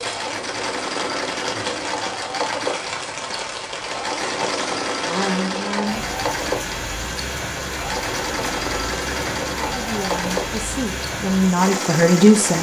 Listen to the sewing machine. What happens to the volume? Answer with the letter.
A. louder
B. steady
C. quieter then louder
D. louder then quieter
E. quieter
B.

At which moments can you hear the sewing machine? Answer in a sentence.
You can hear the sewing machine from 0.0 to 12.5 s.